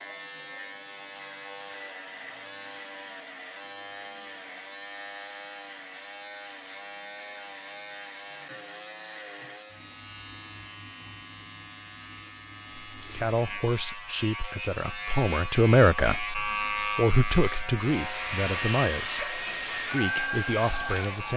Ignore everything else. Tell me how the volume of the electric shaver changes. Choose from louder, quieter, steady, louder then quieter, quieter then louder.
louder.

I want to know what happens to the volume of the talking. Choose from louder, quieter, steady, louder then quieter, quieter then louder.
louder then quieter.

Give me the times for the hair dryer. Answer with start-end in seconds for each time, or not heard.
17.9-21.3.